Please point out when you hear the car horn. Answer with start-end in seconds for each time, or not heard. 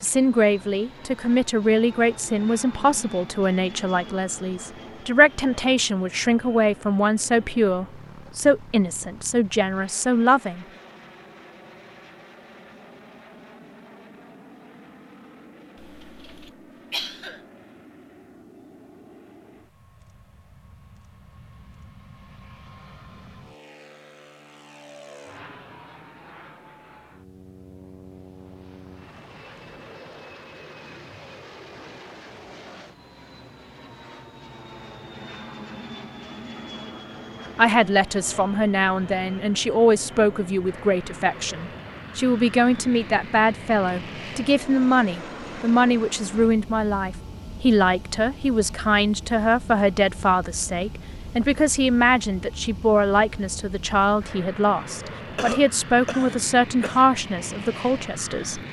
not heard.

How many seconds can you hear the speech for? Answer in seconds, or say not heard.
32 s.